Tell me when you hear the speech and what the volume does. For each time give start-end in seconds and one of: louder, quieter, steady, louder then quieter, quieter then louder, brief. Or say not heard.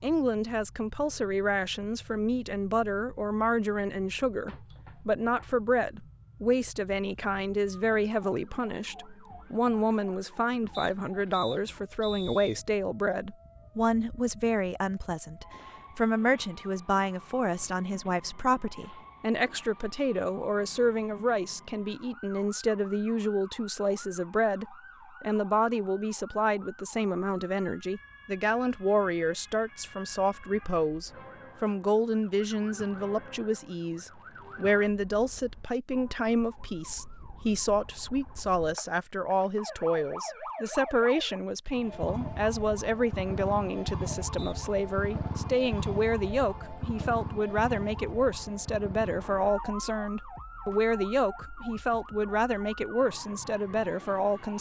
0.0-54.5 steady.